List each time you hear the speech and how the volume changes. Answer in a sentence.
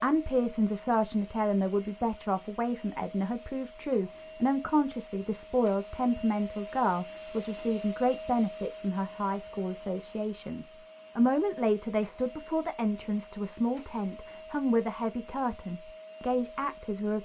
The speech can be heard from 0.0 to 17.2 s, at a steady volume.